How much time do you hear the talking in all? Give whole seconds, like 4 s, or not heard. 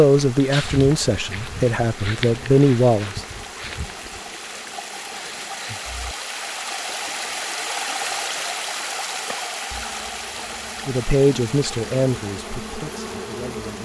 6 s.